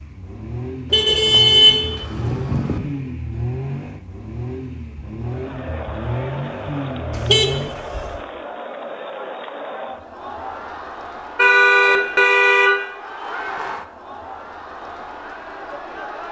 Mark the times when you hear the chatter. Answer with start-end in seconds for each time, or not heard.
5.2-16.2.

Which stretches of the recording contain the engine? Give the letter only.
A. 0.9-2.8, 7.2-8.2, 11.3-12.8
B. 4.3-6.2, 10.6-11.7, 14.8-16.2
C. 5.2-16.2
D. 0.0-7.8
D.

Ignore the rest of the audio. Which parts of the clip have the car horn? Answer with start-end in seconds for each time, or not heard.
0.9-2.8, 7.2-8.2, 11.3-12.8.